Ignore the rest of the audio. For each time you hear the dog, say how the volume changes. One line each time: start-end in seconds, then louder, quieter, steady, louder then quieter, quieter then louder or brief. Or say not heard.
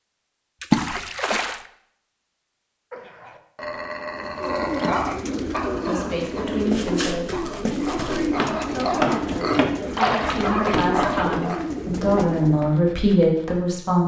2.9-11.7 quieter then louder.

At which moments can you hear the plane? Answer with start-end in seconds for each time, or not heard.
not heard.